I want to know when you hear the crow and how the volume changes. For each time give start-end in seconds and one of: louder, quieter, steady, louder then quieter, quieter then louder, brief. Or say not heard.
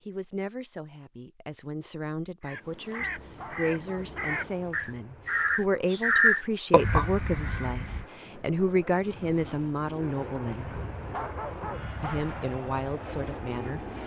2.4-8.1 louder then quieter.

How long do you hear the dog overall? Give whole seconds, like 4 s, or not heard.
3 s.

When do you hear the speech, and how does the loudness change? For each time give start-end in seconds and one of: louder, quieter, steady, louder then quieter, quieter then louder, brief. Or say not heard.
0.1-10.8 louder
12.0-14.0 brief.